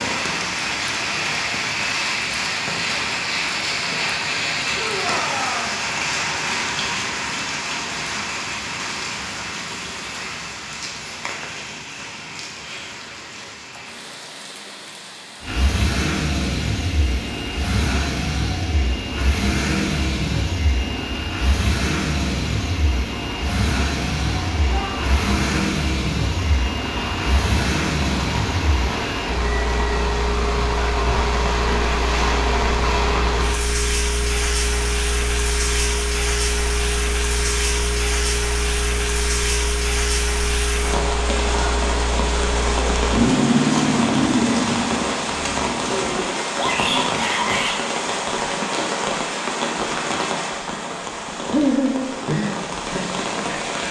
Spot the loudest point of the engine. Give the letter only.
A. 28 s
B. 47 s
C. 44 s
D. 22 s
C.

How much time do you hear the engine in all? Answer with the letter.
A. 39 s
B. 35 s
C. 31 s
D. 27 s
C.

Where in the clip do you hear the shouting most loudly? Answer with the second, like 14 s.
47 s.